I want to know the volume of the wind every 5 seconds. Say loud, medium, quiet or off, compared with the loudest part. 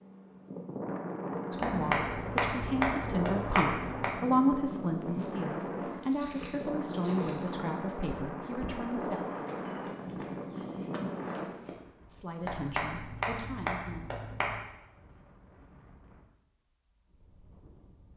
loud, loud, loud, quiet.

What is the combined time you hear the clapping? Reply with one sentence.
You can hear the clapping for 5 seconds altogether.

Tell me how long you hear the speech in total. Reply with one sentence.
The speech can be heard for 10 seconds in total.